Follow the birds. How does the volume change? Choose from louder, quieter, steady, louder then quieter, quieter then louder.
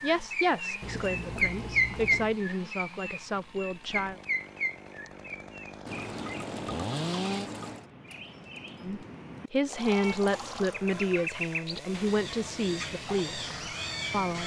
quieter then louder.